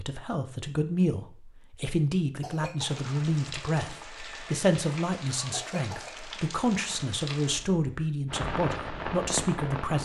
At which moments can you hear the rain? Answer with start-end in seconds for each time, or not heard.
2.8-10.0.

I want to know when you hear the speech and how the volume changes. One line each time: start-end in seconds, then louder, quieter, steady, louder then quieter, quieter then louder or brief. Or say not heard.
0.0-10.0 steady.